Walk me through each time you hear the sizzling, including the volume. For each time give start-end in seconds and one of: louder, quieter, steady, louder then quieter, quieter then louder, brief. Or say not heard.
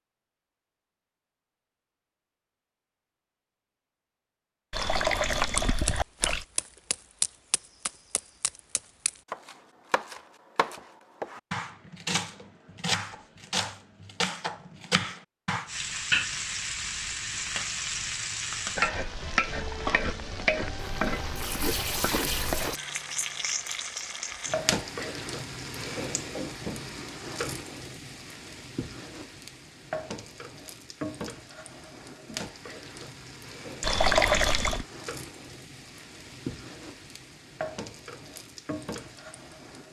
15.7-39.8 quieter.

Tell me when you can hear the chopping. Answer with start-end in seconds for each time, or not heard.
4.8-15.7.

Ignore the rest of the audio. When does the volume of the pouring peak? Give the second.
34 s.